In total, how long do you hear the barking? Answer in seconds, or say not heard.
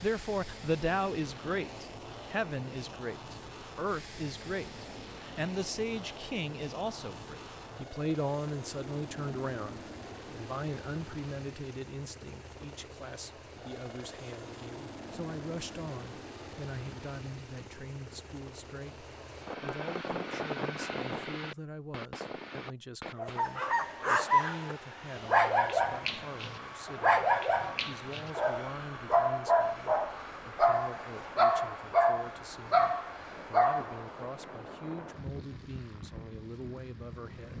11 s.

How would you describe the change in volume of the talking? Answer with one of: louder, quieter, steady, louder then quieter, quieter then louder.
quieter.